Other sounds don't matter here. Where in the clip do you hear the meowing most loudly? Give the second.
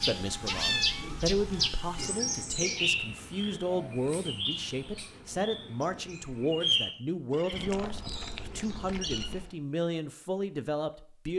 1 s.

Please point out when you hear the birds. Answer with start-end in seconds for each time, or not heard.
0.0-9.4.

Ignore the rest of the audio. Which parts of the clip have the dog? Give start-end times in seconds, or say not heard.
not heard.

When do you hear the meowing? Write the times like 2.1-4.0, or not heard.
0.5-2.0, 7.5-9.5.